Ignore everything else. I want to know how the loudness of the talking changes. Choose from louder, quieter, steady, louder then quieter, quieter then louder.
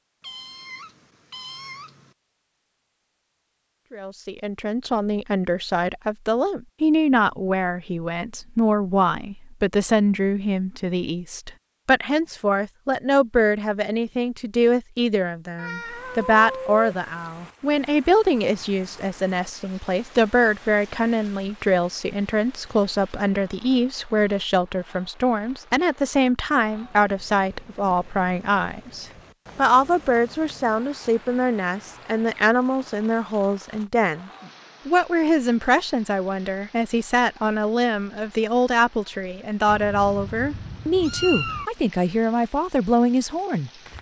steady.